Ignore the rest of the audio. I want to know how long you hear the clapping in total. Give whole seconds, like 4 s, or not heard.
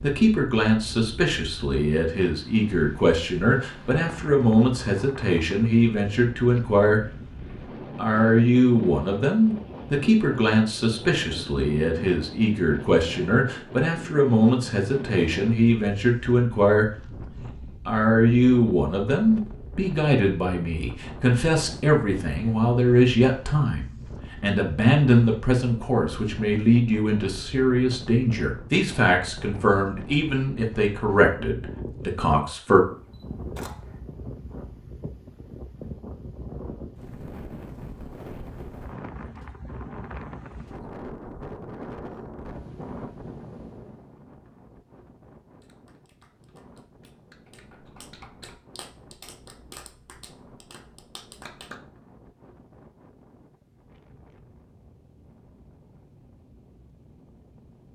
6 s.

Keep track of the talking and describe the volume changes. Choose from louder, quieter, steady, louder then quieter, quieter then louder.
steady.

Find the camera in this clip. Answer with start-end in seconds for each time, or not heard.
32.9-34.0.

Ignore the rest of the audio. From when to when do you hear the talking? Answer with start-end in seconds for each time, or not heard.
0.0-7.0, 8.0-16.9, 17.9-32.8.